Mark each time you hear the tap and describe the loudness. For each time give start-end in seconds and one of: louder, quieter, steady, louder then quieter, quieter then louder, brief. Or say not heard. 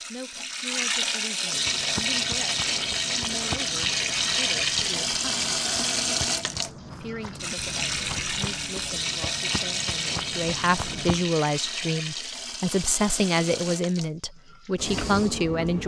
0.0-15.8 quieter.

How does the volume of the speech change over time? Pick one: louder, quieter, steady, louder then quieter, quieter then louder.
louder.